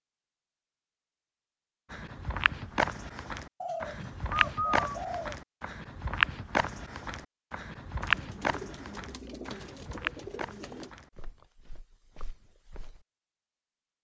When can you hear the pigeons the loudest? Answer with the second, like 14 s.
5 s.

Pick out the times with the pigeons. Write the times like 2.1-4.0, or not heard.
3.6-5.3, 8.0-10.9.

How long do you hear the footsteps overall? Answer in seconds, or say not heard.
11 s.